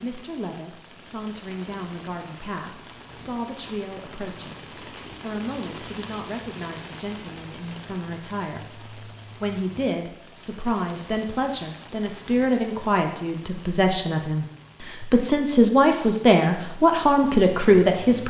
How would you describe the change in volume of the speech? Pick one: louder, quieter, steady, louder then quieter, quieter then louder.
louder.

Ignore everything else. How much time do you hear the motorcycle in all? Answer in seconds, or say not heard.
not heard.